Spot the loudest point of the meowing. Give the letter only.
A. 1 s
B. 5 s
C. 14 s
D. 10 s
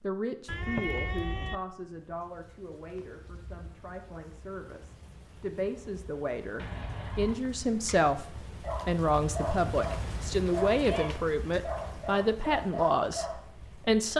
A.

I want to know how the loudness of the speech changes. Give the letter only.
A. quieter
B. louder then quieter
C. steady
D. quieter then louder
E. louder
E.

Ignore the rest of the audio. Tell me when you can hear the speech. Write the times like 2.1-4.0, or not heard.
0.0-14.1.